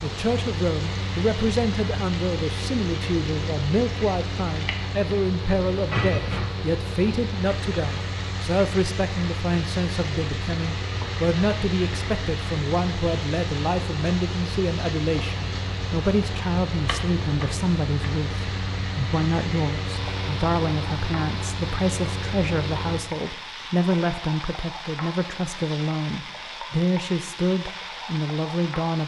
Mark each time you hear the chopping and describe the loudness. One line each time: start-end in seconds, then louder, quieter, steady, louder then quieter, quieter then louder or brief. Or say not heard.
not heard.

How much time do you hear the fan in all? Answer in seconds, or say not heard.
23 s.